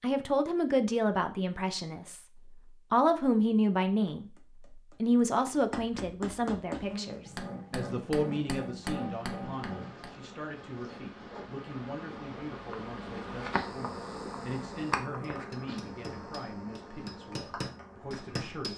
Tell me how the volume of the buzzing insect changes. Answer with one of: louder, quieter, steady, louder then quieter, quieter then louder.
louder then quieter.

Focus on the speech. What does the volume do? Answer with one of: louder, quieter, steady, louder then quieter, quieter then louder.
quieter.